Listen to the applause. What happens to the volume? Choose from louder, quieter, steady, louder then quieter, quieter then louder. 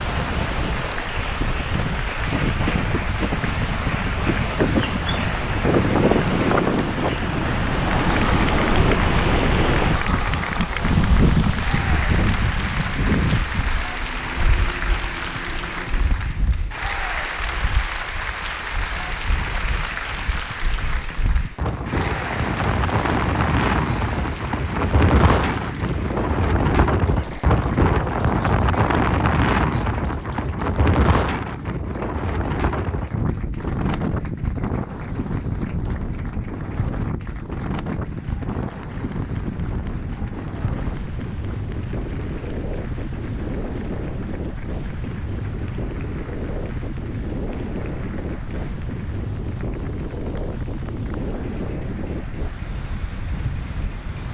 quieter.